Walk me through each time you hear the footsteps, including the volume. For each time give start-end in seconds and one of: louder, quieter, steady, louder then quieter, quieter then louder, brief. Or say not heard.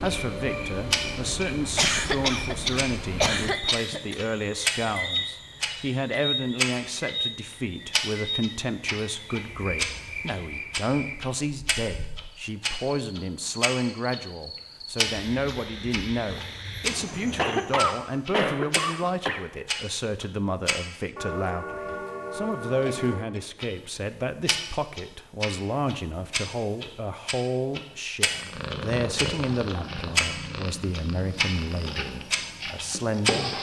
not heard.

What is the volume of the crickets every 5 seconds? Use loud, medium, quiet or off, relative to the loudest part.
loud, loud, medium, medium, off, off, off.